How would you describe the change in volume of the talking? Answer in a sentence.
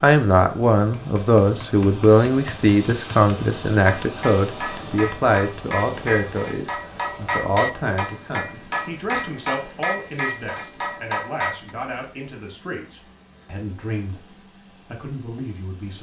The loudness of the talking goes down.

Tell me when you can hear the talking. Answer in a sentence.
You can hear the talking from 0.0 to 15.9 s.